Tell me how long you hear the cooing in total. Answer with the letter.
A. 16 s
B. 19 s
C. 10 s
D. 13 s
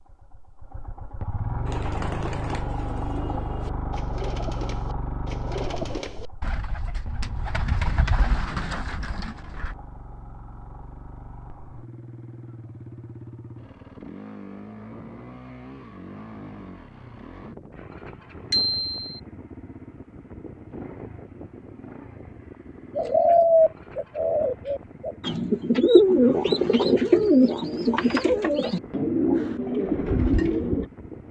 A.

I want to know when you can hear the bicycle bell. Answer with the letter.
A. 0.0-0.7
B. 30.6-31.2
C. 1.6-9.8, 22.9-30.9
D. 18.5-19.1
D.